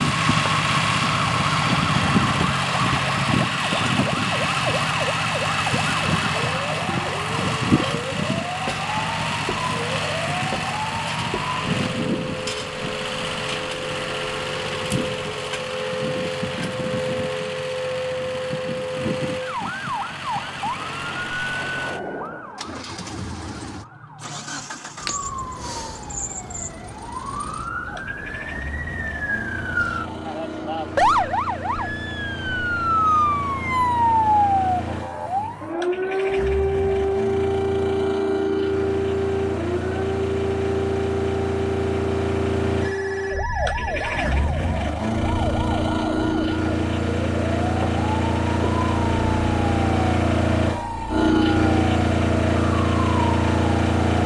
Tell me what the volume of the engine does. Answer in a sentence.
The loudness of the engine goes down, then up.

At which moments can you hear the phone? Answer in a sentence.
You can hear the phone from 42.8 to 44.2 s.